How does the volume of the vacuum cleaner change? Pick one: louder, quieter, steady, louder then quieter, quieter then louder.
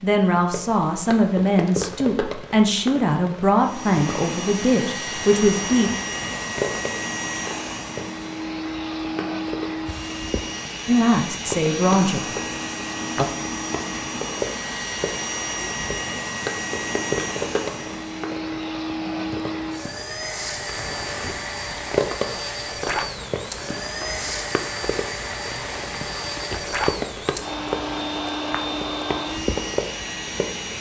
steady.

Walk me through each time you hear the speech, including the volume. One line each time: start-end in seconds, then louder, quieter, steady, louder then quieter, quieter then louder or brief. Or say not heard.
0.0-5.9 steady
10.8-12.2 brief.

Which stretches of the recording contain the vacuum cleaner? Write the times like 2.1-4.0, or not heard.
3.6-30.7.